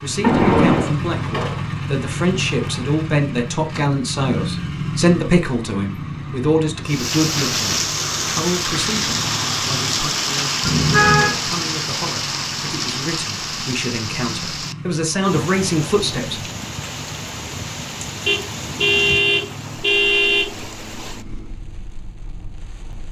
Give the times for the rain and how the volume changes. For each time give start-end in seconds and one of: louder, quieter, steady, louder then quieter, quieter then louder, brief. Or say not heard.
6.8-23.0 quieter.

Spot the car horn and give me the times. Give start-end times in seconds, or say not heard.
0.2-0.9, 10.6-11.3, 18.2-20.5.